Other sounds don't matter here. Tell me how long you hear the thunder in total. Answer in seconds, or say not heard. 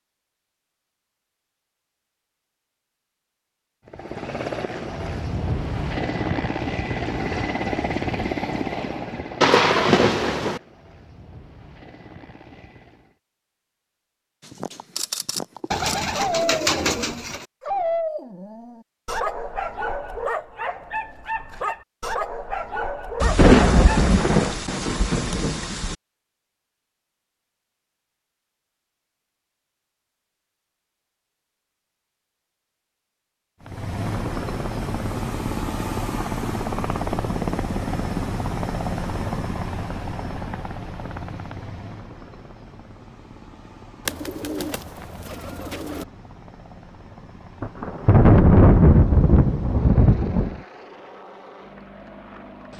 7 s.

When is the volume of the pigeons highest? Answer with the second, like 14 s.
17 s.